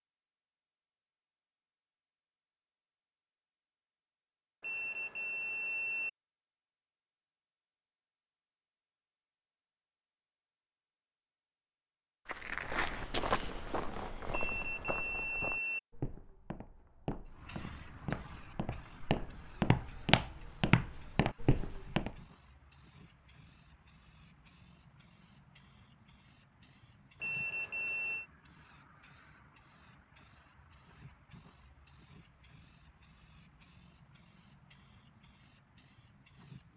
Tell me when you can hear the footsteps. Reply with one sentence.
You can hear the footsteps from 12.2 to 22.1 s.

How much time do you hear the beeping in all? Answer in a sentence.
You can hear the beeping for 4 seconds altogether.